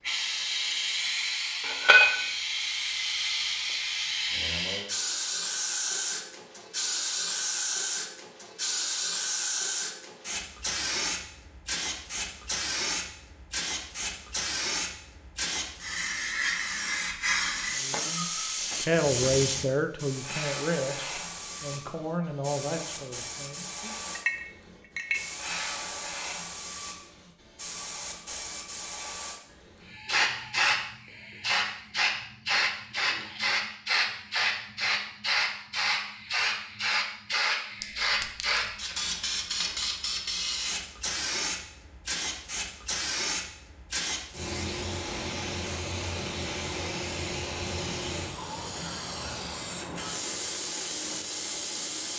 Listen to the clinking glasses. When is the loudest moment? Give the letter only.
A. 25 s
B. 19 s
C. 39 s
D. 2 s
D.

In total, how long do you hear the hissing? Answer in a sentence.
You can hear the hissing for 52 seconds altogether.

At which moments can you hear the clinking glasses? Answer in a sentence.
The clinking glasses can be heard from 1.6 to 2.2 s, from 24.1 to 25.2 s and from 37.8 to 38.8 s.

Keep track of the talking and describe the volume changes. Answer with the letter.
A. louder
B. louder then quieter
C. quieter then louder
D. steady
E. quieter
E.